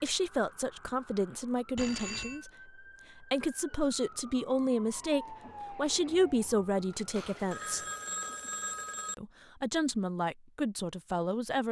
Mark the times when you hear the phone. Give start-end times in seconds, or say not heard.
1.8-2.4, 7.2-9.2.